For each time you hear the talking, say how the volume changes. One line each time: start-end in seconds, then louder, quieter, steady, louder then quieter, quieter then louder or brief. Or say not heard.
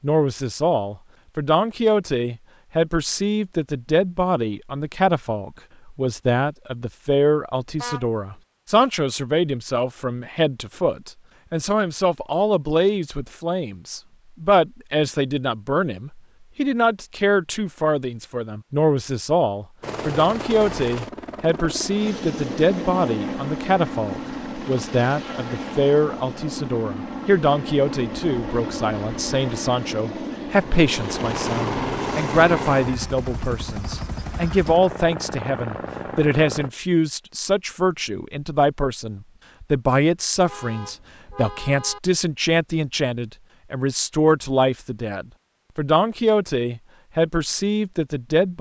0.0-48.5 steady.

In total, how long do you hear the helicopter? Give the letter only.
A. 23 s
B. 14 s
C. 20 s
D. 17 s
D.